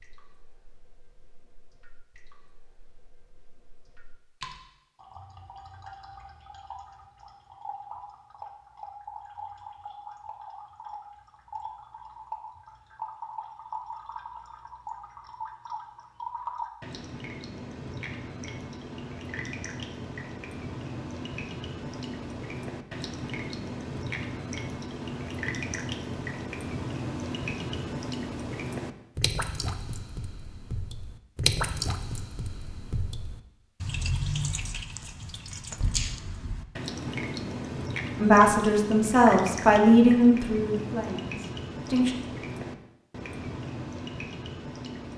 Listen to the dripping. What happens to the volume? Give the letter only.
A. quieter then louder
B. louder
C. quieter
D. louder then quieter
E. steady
B.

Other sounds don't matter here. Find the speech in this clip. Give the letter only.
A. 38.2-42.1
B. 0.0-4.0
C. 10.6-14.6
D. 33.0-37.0
A.